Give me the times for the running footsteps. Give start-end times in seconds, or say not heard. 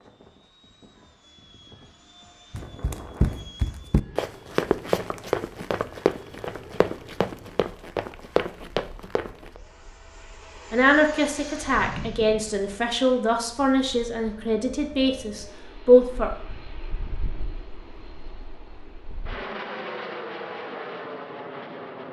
2.5-9.6.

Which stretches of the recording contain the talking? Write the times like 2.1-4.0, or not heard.
10.7-16.3.